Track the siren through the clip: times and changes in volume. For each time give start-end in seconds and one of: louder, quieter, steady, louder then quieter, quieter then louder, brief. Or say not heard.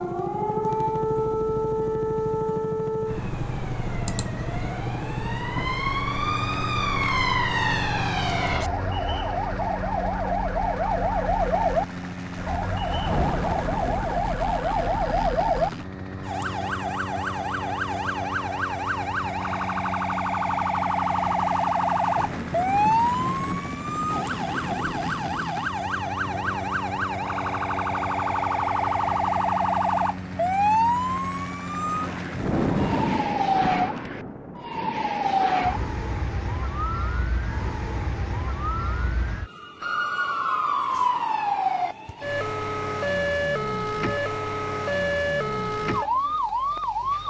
0.0-47.2 steady.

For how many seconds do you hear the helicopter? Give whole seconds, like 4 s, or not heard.
33 s.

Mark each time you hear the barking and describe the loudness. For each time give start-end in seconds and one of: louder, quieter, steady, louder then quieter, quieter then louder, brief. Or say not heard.
not heard.